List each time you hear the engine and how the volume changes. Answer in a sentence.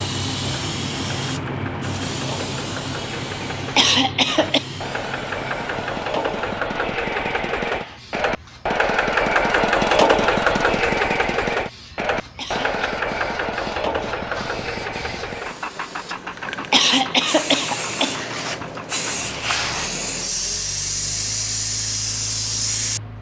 You can hear the engine from 0.0 to 23.1 s, getting louder then quieter.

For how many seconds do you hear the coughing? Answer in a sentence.
The coughing can be heard for 4 seconds in total.